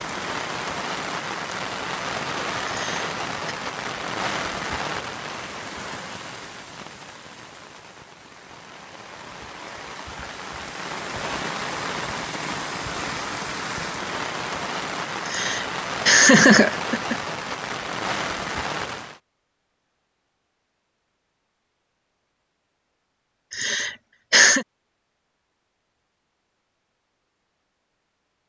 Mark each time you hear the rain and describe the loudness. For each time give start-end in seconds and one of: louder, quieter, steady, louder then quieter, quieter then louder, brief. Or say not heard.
0.0-19.2 quieter then louder.